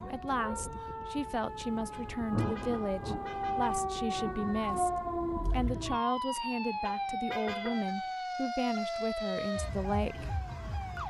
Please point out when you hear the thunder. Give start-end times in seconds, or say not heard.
1.4-5.5.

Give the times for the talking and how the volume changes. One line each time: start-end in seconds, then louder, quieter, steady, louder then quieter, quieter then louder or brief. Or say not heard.
0.0-10.3 steady.